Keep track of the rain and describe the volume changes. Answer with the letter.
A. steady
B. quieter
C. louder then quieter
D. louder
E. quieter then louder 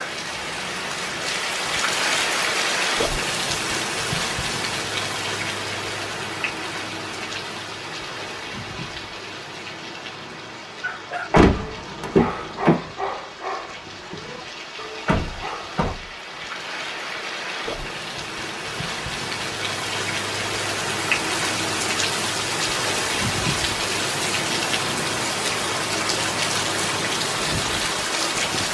E.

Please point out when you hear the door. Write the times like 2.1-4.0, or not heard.
11.3-12.8, 15.1-16.1.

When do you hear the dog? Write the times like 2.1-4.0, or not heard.
10.8-16.0.